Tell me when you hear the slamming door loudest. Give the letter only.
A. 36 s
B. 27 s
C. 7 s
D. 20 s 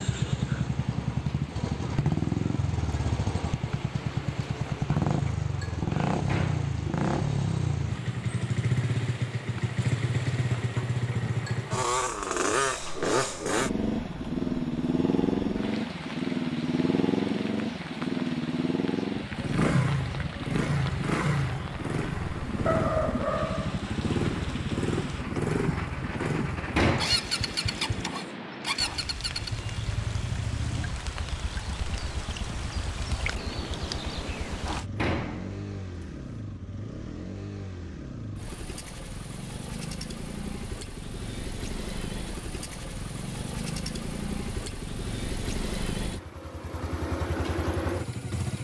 B.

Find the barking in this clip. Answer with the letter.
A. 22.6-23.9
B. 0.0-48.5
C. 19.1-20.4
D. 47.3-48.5
A.